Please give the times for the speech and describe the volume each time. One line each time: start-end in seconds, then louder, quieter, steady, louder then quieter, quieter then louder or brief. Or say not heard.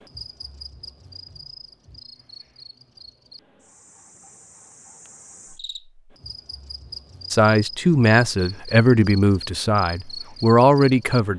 7.3-11.3 quieter then louder.